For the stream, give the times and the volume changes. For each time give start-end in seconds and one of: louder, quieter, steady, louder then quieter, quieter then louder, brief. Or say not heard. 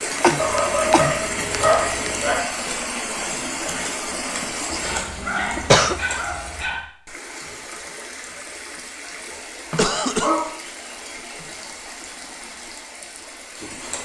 0.0-13.9 quieter.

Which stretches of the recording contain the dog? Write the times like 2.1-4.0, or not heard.
0.3-2.4, 4.7-6.8, 9.7-11.4.